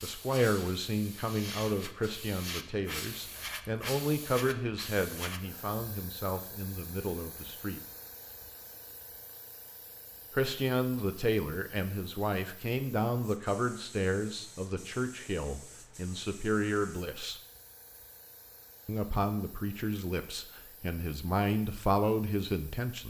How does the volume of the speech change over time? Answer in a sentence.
The loudness of the speech stays about the same.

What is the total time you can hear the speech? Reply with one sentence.
You can hear the speech for 19 seconds altogether.